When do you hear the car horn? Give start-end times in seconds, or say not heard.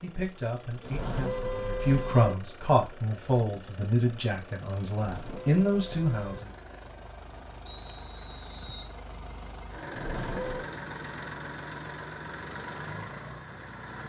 0.8-2.4, 5.0-6.5, 9.9-10.7.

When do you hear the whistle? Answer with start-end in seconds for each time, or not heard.
7.7-8.9.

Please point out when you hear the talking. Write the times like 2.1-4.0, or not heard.
0.0-6.5.